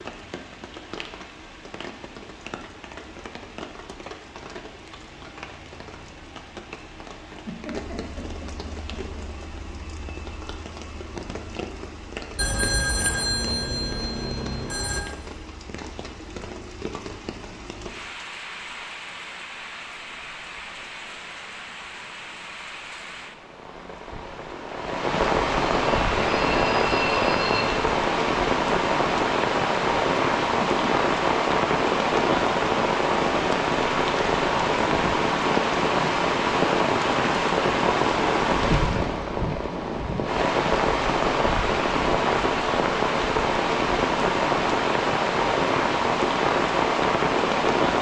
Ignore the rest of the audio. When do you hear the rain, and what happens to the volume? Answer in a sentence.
The rain can be heard from 0.0 to 47.9 s, getting louder.